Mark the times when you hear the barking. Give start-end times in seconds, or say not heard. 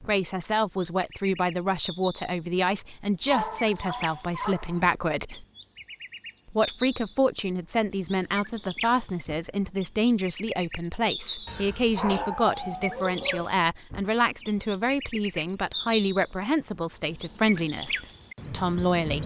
3.2-4.8, 11.4-13.5.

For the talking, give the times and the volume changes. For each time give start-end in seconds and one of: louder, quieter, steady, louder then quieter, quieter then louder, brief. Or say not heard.
0.1-5.5 steady
6.5-19.2 steady.